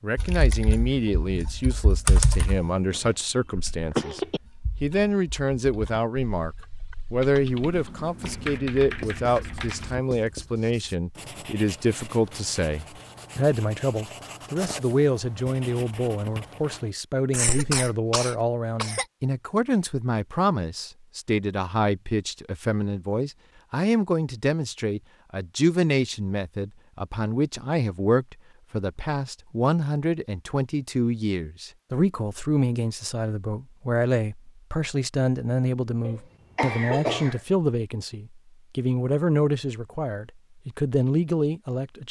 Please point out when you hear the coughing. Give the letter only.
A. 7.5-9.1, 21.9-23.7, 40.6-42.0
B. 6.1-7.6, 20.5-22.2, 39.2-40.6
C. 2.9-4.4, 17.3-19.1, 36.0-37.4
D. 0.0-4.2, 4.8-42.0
C.